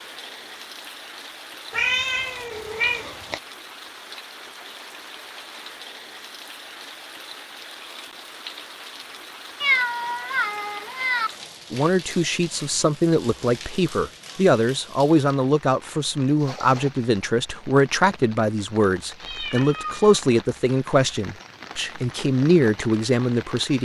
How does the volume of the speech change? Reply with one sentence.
The volume of the speech stays about the same.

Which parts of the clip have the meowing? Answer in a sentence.
The meowing can be heard from 1.7 to 3.4 s, from 9.6 to 11.3 s and from 19.1 to 20.2 s.